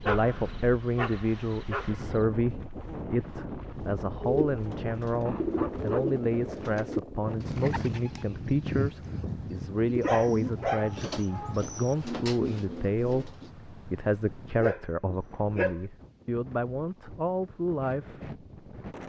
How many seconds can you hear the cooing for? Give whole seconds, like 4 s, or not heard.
9 s.